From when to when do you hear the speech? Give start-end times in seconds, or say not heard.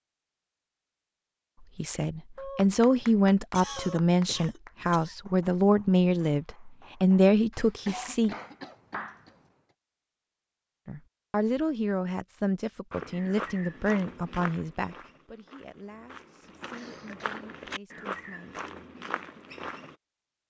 1.8-8.3, 10.8-18.6.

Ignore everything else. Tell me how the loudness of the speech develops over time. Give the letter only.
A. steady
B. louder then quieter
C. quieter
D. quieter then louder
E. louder
C.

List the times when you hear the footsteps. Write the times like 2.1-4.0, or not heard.
12.9-19.9.